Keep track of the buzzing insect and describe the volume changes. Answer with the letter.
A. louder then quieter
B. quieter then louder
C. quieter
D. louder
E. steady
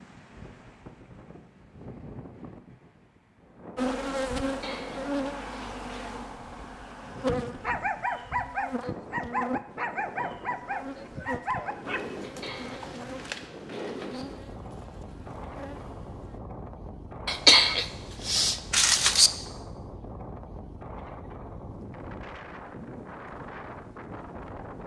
C.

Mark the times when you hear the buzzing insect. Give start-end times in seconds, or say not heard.
3.8-16.4.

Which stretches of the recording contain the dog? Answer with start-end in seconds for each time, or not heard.
7.6-13.5.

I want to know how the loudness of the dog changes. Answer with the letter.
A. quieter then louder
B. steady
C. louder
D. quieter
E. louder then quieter
D.